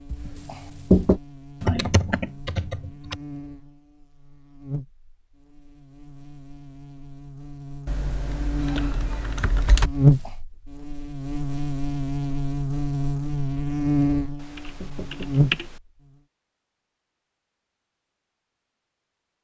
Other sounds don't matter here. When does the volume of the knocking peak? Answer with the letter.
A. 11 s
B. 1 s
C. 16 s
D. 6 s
B.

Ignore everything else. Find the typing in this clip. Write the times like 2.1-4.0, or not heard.
1.6-3.2, 7.8-9.9, 14.6-15.7.